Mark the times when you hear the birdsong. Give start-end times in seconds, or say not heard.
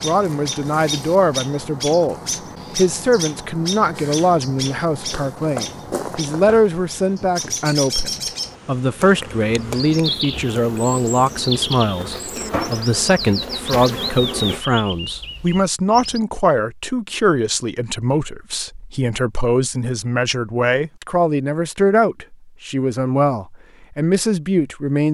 0.0-16.2.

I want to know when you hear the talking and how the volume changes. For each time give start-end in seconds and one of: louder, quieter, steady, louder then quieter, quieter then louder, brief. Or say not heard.
0.0-25.0 steady.